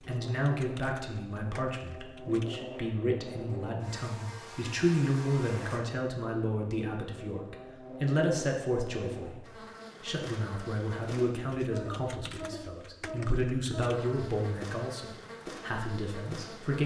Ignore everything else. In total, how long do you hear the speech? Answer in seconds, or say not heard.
17 s.